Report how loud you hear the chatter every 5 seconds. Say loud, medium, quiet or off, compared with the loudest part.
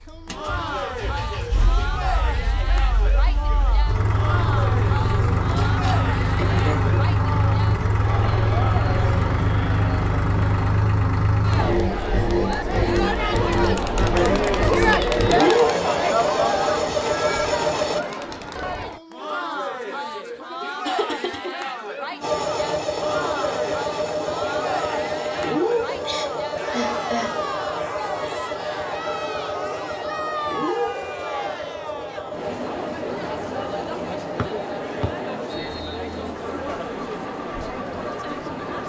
medium, medium, loud, loud, medium, medium, medium, medium.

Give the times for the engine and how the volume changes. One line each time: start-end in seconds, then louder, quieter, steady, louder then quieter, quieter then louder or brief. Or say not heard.
0.1-18.0 louder
22.2-38.8 quieter.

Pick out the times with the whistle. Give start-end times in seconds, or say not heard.
34.4-36.2.